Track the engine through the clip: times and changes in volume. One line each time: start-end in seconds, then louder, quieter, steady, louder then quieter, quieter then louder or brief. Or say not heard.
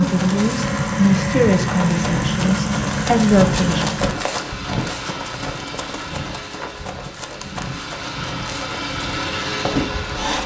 0.0-10.4 quieter then louder.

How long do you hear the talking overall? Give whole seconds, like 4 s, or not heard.
4 s.